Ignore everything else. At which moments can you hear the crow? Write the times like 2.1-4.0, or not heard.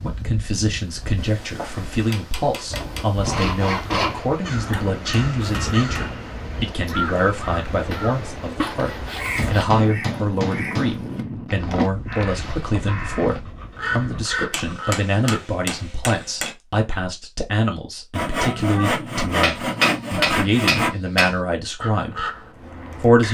4.5-15.4, 21.8-23.2.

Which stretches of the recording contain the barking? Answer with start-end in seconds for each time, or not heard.
not heard.